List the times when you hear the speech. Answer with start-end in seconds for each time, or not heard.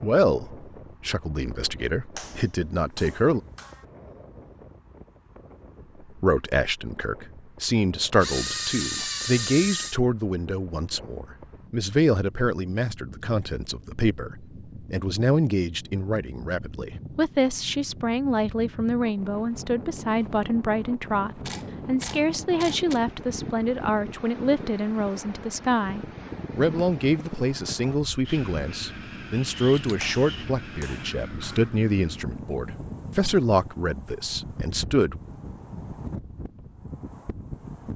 0.0-3.4, 6.2-35.2.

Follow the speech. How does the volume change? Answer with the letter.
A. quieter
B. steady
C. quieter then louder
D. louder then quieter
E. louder
B.